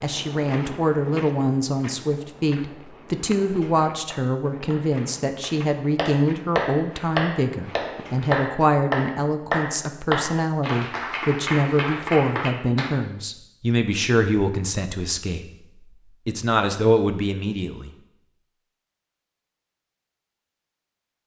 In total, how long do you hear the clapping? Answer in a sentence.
The clapping can be heard for 9 seconds in total.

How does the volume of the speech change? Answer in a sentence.
The volume of the speech stays about the same.